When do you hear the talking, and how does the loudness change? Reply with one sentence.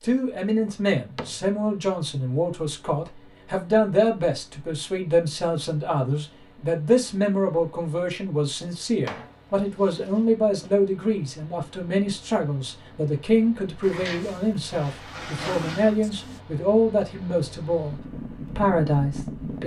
The talking can be heard from 0.0 to 19.6 s, at a steady volume.